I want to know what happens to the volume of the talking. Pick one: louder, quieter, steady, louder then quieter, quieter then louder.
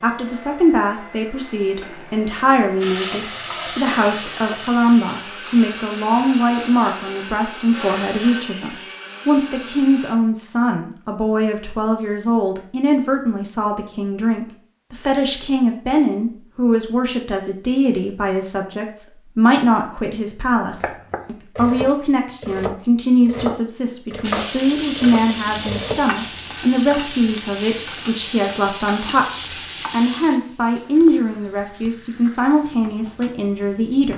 steady.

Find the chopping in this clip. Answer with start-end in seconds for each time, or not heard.
20.7-26.1.